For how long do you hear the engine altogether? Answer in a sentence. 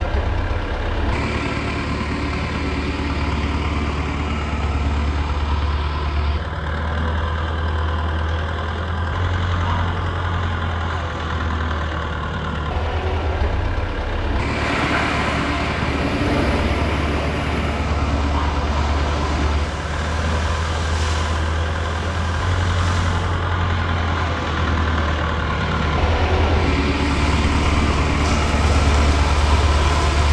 You can hear the engine for 30 seconds altogether.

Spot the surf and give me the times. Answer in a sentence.
You can hear the surf from 14.4 to 30.2 s.